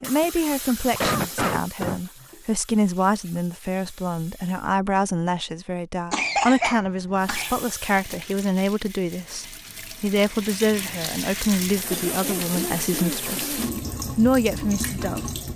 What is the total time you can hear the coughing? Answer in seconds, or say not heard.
5 s.